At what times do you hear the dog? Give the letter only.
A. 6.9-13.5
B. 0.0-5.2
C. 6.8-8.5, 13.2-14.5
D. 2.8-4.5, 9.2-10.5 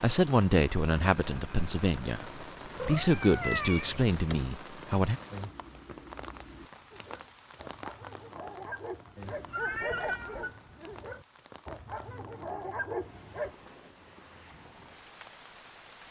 A.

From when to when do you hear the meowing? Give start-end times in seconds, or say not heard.
2.8-4.5, 9.2-10.5.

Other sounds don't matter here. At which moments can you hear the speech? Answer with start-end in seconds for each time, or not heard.
0.0-5.2.